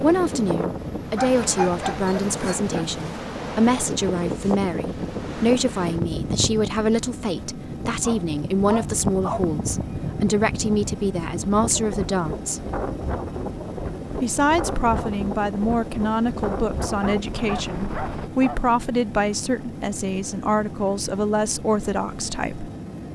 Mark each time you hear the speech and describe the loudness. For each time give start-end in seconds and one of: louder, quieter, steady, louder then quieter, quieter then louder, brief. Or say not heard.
0.0-12.7 steady
14.2-22.7 steady.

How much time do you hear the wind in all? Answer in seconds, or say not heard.
18 s.